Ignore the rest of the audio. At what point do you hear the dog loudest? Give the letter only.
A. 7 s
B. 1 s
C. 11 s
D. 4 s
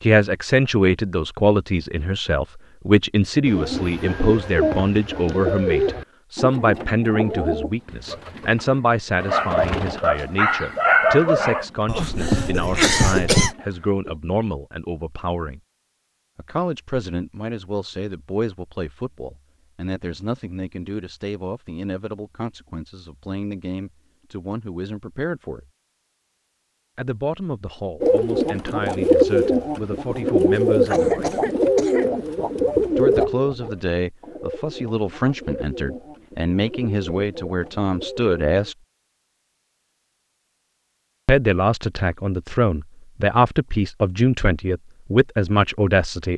C.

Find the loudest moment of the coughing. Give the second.
13 s.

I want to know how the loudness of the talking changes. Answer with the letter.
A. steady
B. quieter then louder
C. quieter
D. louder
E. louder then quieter
B.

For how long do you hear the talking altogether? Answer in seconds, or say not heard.
40 s.